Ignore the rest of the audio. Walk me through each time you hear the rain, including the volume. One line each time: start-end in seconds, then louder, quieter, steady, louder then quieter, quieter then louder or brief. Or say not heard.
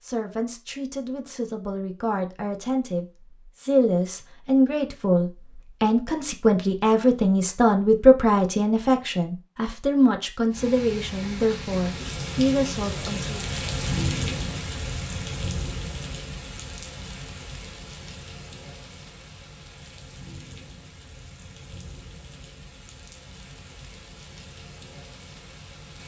10.5-26.0 quieter.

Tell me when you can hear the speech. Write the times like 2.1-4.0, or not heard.
0.0-13.3.